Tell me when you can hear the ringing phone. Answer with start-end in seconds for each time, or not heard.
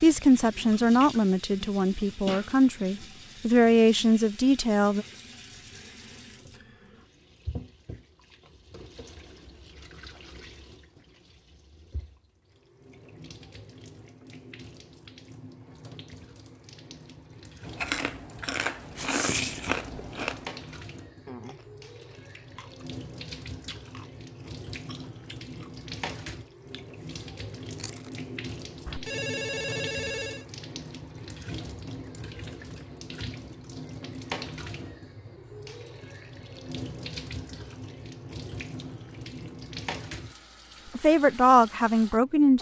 28.9-30.4.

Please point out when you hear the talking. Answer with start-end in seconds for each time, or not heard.
0.0-5.0, 41.0-42.5.